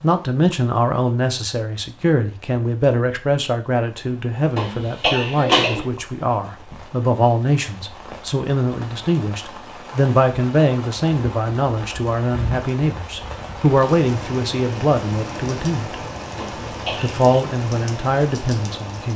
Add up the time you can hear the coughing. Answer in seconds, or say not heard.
2 s.